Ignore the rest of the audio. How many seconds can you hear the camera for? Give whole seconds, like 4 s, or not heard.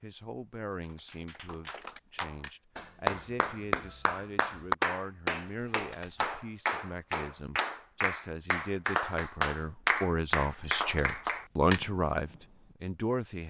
3 s.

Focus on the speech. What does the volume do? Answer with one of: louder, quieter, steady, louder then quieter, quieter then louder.
louder.